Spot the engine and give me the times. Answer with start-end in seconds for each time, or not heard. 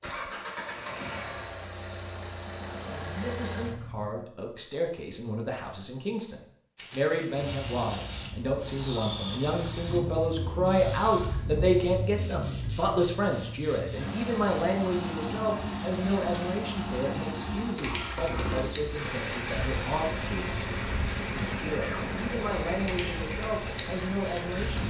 0.0-4.1, 9.4-24.8.